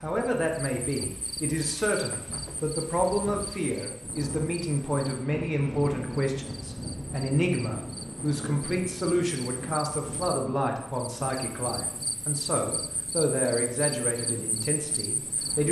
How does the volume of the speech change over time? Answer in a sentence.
The loudness of the speech stays about the same.